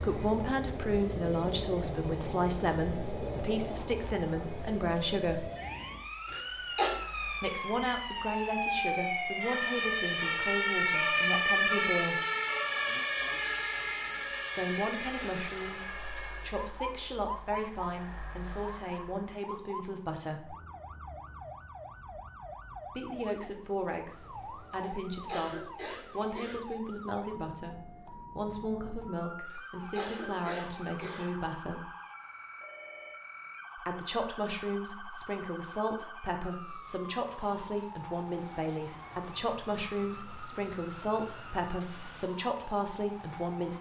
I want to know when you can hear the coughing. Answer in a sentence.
The coughing can be heard from 6.2 to 7.0 s, from 24.8 to 26.6 s and from 29.4 to 31.3 s.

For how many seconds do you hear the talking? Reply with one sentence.
The talking can be heard for 35 seconds in total.